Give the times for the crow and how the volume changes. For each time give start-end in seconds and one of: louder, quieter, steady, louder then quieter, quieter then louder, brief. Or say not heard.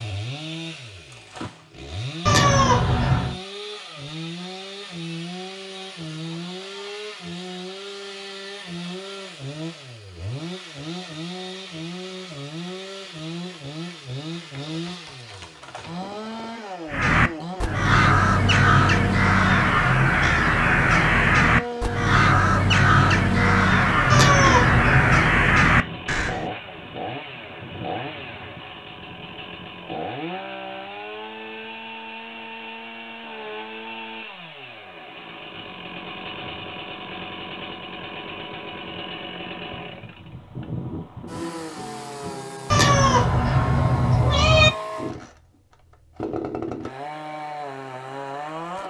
16.9-26.4 steady.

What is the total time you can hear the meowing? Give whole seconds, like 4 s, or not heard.
4 s.